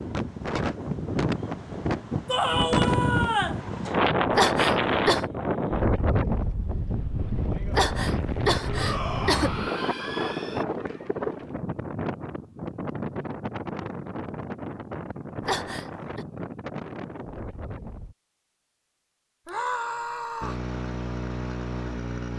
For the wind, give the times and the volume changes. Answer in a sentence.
You can hear the wind from 0.0 to 18.1 s, getting quieter.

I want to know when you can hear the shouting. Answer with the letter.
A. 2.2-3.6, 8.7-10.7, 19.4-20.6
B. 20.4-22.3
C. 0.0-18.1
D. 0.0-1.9
A.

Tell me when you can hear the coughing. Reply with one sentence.
You can hear the coughing from 4.3 to 5.2 s, from 7.7 to 9.5 s and from 15.4 to 16.2 s.